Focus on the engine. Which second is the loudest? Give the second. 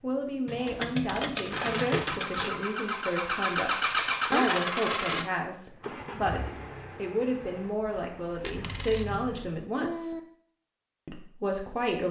4 s.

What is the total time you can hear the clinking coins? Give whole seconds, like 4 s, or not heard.
4 s.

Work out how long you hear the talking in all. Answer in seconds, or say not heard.
11 s.